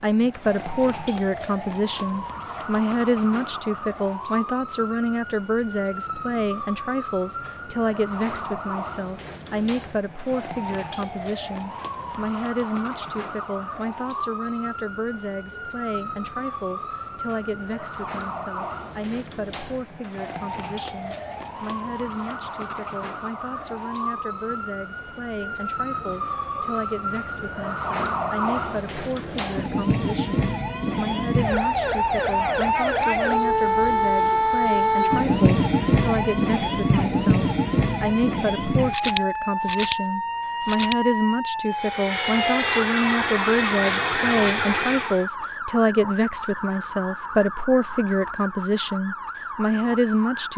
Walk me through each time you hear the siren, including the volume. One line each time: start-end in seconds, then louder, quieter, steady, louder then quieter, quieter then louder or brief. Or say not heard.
0.0-50.5 louder then quieter.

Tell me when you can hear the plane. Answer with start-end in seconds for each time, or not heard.
41.6-45.2.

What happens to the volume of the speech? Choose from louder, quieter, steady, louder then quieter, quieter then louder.
quieter then louder.